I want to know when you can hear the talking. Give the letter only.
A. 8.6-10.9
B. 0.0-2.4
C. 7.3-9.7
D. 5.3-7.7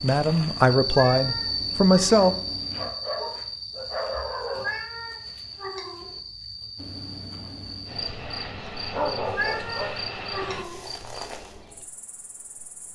B.